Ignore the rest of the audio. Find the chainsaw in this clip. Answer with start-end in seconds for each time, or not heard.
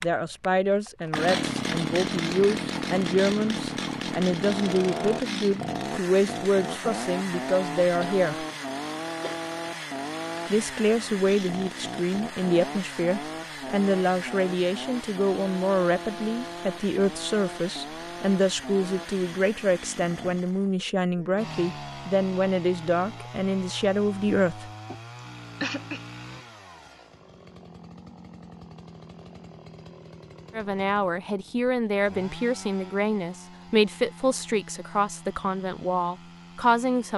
0.0-37.1.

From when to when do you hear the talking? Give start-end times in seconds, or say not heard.
0.0-8.4, 10.5-24.7, 30.5-37.1.